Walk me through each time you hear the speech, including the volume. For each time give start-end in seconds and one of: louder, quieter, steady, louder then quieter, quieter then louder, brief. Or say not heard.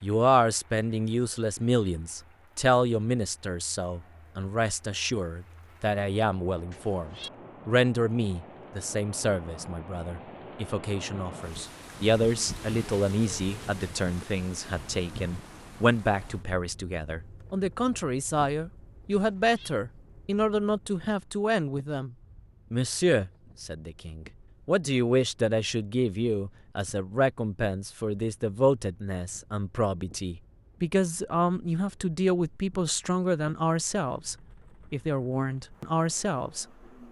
0.0-36.6 steady.